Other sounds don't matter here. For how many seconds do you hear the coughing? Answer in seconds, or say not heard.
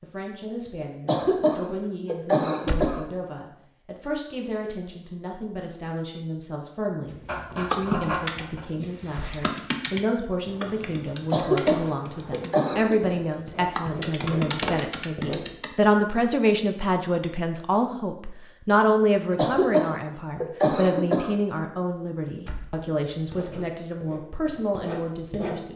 6 s.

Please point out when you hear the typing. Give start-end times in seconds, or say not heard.
7.7-15.8.